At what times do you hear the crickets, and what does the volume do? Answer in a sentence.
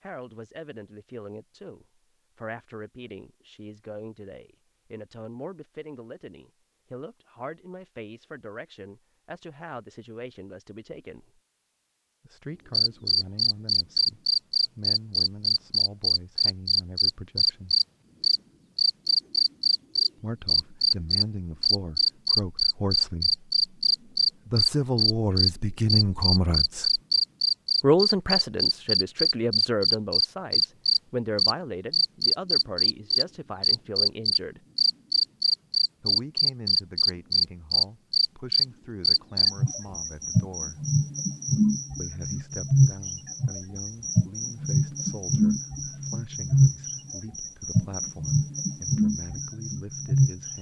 The crickets can be heard from 12.7 to 50.5 s, at a steady volume.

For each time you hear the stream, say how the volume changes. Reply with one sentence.
The stream can't be heard in this clip.